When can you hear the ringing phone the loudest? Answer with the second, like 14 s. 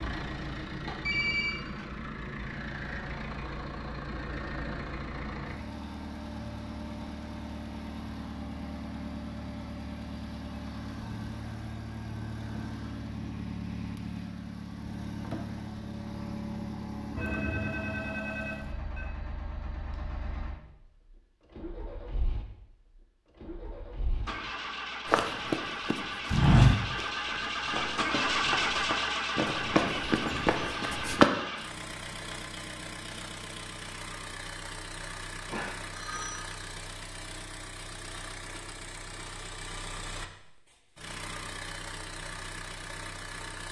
1 s.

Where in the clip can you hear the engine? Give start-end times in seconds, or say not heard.
0.0-43.6.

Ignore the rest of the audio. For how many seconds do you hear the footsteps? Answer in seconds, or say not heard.
6 s.